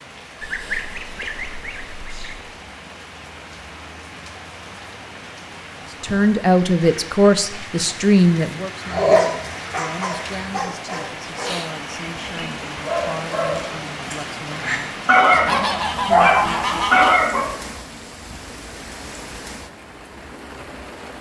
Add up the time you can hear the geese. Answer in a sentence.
The geese can be heard for 4 seconds in total.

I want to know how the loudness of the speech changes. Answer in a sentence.
The volume of the speech goes down.